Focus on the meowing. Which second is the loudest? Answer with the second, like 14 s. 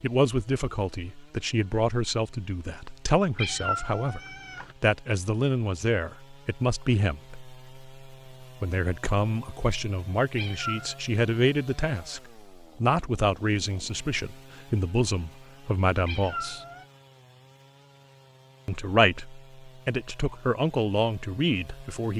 4 s.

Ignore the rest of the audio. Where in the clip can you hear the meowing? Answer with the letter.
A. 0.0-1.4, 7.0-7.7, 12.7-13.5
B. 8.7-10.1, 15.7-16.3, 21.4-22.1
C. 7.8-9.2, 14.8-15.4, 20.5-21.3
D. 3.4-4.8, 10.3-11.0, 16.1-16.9
D.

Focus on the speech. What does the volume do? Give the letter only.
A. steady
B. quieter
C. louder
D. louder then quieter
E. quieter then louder
A.